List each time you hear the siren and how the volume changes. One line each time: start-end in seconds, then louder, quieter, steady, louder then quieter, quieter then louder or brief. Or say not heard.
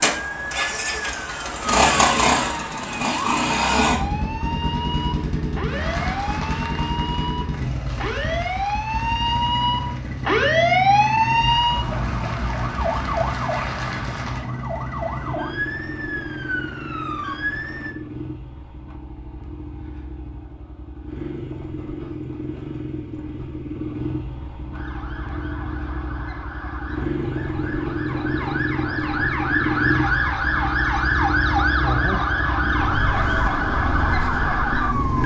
0.0-17.9 louder then quieter
24.7-35.2 louder.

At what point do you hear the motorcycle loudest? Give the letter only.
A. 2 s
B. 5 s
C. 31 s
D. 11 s
A.